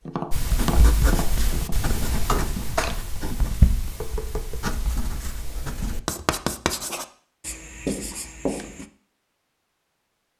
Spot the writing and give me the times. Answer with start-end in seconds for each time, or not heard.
0.3-8.8.